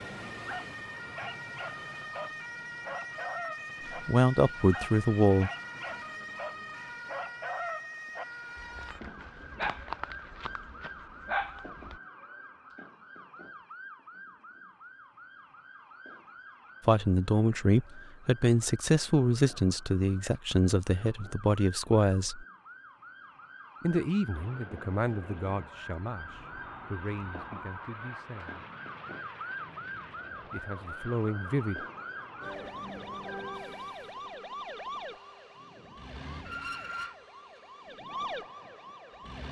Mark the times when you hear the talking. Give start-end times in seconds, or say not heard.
4.0-5.5, 16.9-22.4, 23.8-28.6, 30.5-31.9.